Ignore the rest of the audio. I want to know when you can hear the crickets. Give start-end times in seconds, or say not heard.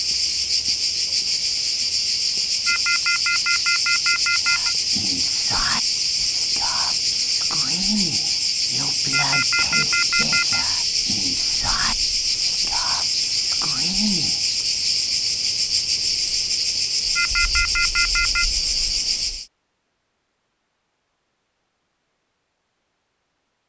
0.0-19.4.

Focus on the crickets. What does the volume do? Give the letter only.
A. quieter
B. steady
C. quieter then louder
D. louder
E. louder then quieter
B.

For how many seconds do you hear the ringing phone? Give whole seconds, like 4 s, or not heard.
5 s.